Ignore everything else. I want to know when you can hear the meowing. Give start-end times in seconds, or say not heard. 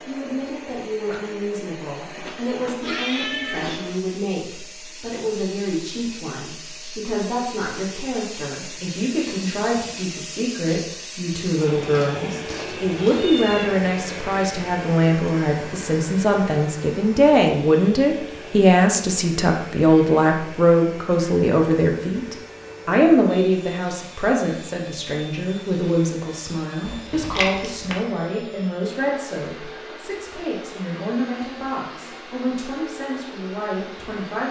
2.8-3.8, 11.8-13.7, 26.9-27.9.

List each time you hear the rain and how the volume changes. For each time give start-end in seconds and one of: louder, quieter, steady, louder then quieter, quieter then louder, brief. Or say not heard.
not heard.